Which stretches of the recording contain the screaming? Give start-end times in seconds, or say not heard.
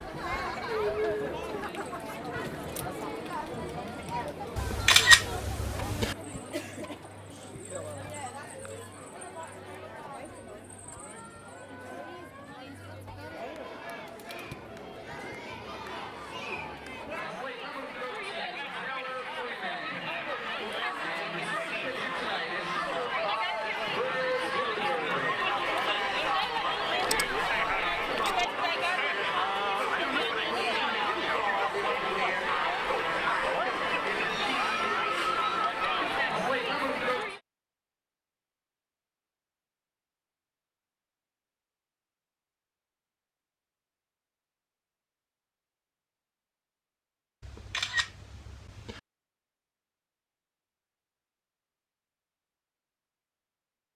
not heard.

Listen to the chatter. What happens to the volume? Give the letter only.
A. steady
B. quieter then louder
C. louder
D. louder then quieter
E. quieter
B.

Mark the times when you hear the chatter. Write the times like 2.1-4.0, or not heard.
0.0-37.4.